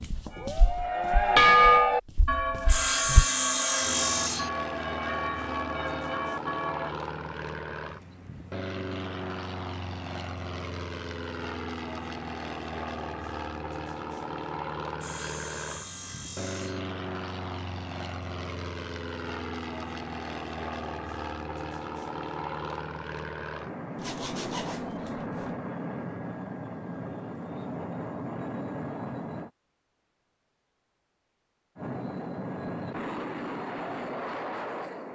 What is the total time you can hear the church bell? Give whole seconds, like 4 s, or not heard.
7 s.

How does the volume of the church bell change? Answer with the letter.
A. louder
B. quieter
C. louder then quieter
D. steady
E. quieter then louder
B.